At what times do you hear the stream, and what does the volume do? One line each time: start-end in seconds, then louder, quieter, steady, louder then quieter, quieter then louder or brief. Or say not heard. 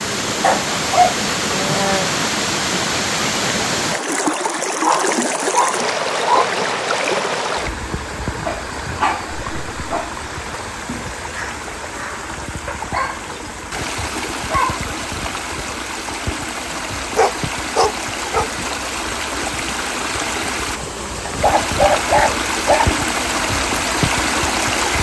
0.0-24.9 quieter then louder.